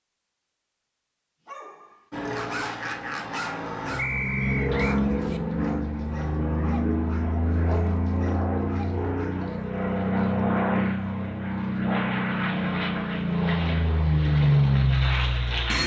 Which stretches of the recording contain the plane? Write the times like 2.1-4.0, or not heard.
2.1-15.8.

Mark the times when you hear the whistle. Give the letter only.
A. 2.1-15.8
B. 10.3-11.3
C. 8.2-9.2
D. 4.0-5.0
D.